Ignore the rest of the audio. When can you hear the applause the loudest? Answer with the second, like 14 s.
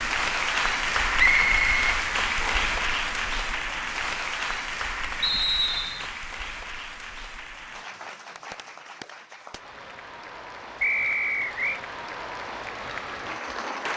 1 s.